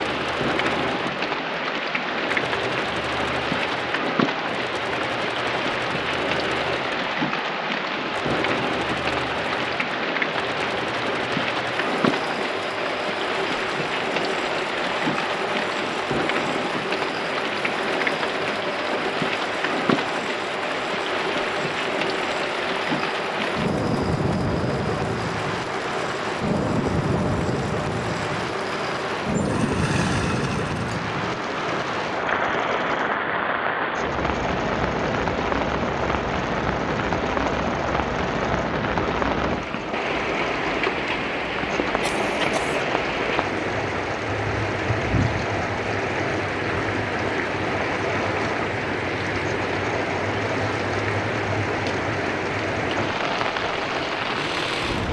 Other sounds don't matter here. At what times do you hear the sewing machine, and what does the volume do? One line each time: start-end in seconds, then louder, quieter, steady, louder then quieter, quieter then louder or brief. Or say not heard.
0.0-55.0 steady.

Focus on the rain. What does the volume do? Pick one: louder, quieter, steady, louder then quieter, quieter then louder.
steady.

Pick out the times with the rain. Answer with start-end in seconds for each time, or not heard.
0.0-55.0.